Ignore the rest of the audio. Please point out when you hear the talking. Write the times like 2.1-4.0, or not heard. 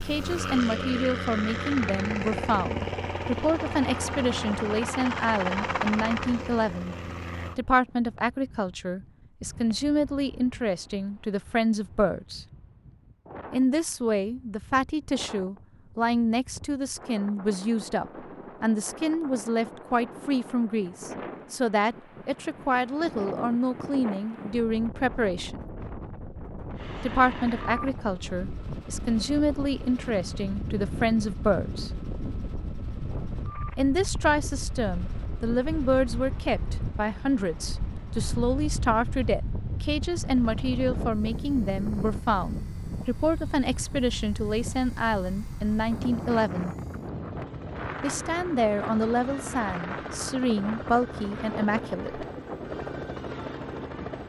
0.0-7.0, 7.5-12.4, 13.5-25.6, 27.0-31.9, 33.8-46.8, 48.0-52.2.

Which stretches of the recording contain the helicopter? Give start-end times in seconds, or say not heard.
0.0-7.6, 26.8-54.2.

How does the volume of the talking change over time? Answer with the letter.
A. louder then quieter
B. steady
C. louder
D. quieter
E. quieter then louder
B.